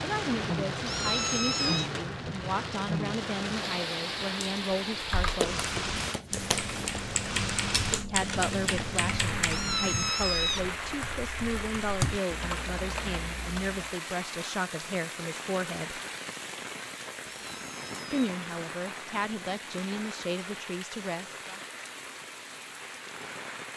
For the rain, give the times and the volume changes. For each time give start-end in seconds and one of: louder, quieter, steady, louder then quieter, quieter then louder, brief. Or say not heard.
0.0-23.7 quieter.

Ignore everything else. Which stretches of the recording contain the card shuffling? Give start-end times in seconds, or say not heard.
5.3-6.8.